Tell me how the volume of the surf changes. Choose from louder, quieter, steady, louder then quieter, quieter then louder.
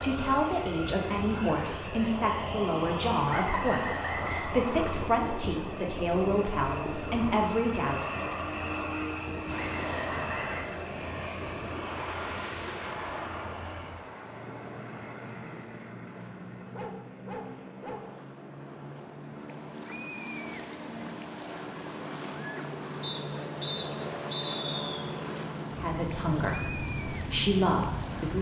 quieter then louder.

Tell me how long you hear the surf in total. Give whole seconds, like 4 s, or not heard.
19 s.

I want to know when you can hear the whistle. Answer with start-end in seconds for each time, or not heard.
3.2-4.5, 9.5-10.7, 23.0-25.1.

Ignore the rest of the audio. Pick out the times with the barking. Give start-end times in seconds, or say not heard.
16.7-18.1.